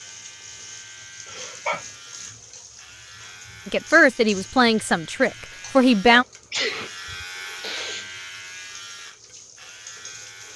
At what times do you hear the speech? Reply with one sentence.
The speech can be heard from 3.6 to 6.2 s.